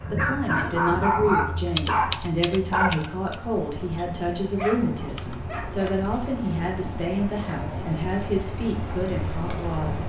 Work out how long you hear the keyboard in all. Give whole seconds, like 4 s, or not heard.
3 s.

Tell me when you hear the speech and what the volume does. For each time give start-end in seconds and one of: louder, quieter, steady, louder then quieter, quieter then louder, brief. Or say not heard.
0.0-10.0 steady.